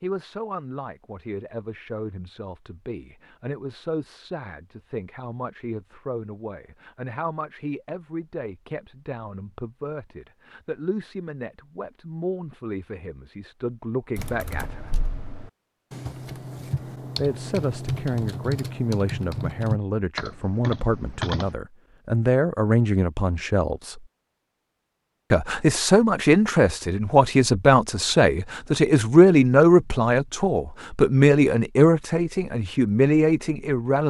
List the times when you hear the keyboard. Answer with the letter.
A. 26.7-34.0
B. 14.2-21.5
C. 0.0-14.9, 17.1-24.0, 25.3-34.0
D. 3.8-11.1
B.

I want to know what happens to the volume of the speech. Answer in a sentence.
The volume of the speech goes up.